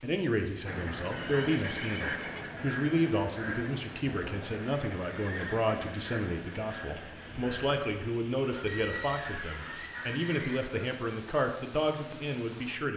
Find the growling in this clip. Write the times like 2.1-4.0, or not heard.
not heard.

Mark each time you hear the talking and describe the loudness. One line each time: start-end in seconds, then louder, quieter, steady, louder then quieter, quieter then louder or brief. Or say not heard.
0.0-12.9 steady.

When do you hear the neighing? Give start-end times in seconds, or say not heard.
1.1-2.5, 5.1-5.7, 8.7-10.7.